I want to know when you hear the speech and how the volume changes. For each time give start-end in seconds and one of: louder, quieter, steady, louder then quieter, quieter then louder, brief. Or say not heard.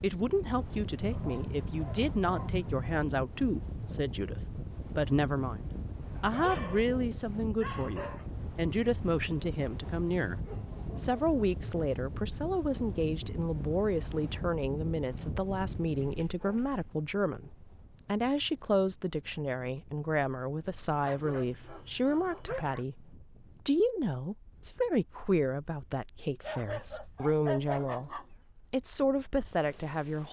0.0-30.2 steady.